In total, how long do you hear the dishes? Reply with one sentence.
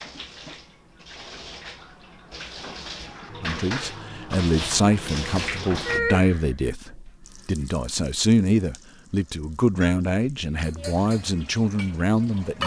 The dishes can be heard for 4 seconds in total.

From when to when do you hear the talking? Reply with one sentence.
You can hear the talking from 3.4 to 12.6 s.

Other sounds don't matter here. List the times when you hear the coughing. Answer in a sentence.
The coughing can't be heard in this clip.